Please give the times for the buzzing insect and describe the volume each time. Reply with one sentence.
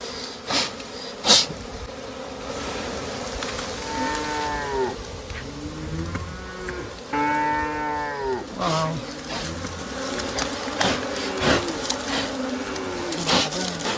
You can hear the buzzing insect from 0.0 to 13.9 s, getting quieter then louder.